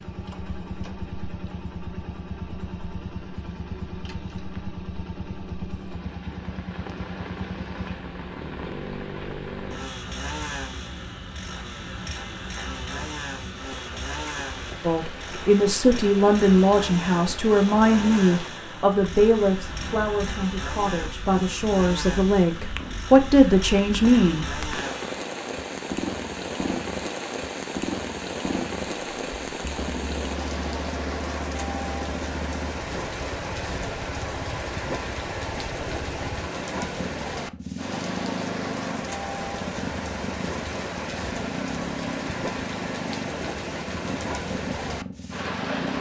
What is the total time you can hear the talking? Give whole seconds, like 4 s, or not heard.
10 s.